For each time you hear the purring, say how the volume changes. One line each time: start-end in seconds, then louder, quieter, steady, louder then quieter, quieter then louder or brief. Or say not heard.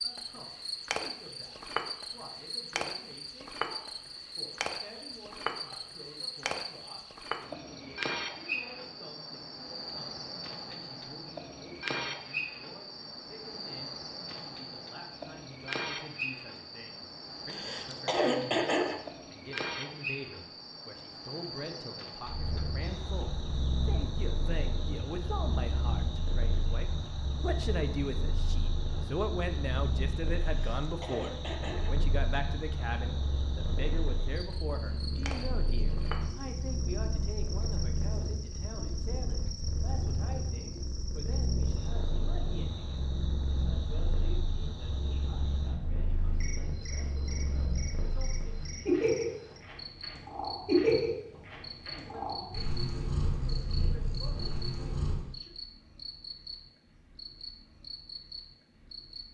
22.2-55.4 louder.